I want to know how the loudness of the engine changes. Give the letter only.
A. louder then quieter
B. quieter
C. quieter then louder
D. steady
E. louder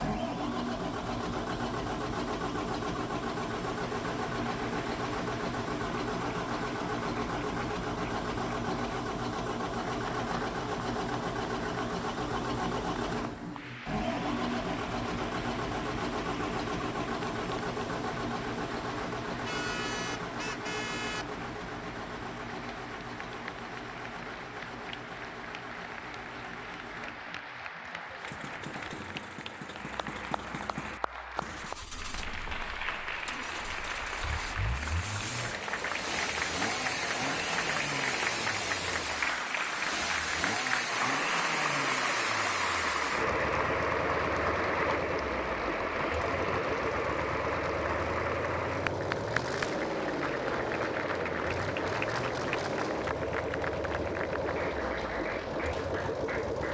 C.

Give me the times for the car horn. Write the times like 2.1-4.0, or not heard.
19.4-21.2.